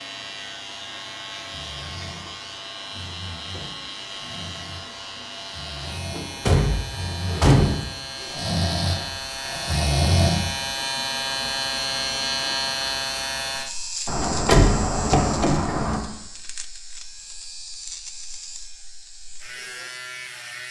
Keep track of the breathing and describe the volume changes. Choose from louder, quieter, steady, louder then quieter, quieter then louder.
louder.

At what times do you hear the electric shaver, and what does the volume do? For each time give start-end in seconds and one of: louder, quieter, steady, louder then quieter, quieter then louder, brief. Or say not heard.
0.0-20.6 louder then quieter.